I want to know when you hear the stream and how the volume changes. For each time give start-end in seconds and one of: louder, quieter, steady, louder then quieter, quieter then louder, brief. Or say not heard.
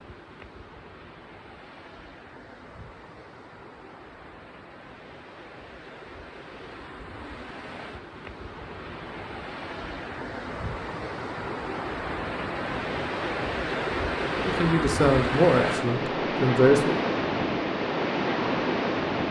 0.0-19.2 louder.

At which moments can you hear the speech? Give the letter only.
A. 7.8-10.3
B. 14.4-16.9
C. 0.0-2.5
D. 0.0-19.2
B.